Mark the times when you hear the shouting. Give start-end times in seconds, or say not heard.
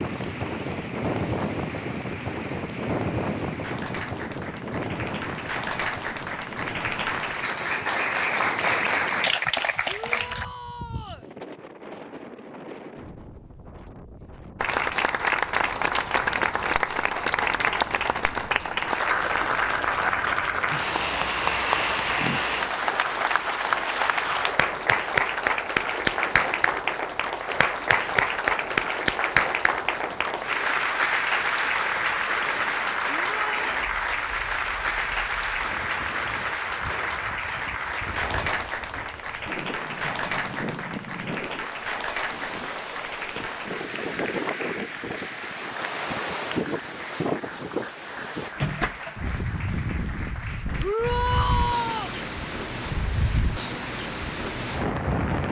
9.8-11.2, 33.2-33.7, 50.8-52.1.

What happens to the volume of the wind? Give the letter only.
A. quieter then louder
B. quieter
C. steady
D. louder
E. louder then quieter
A.